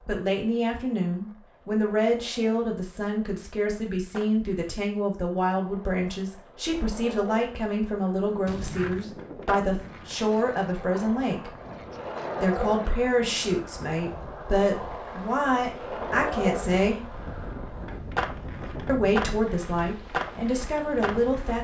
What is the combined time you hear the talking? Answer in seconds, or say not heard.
19 s.